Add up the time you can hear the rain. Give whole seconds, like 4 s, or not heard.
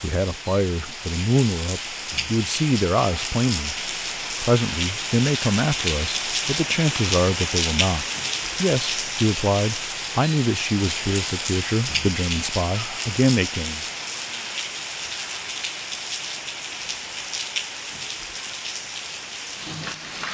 20 s.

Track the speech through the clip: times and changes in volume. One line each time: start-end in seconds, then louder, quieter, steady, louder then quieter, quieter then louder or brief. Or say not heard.
0.0-13.8 steady.